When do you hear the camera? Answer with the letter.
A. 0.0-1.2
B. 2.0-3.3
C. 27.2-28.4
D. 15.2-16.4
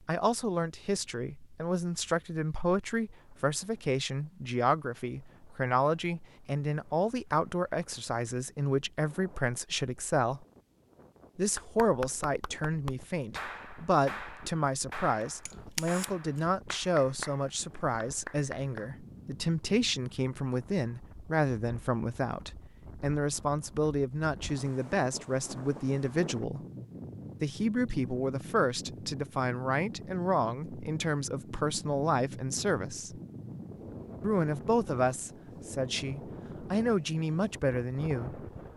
D.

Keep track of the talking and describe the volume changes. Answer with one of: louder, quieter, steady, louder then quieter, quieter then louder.
steady.